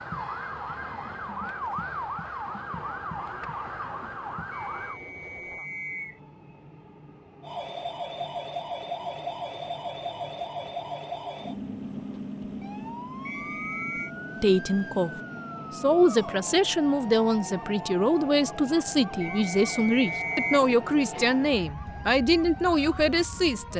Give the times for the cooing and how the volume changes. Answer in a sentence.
You can't hear the cooing here.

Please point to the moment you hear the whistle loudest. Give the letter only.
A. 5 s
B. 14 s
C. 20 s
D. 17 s
C.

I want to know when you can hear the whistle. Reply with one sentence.
The whistle can be heard from 4.5 to 6.2 s, from 13.2 to 14.1 s and from 19.2 to 20.6 s.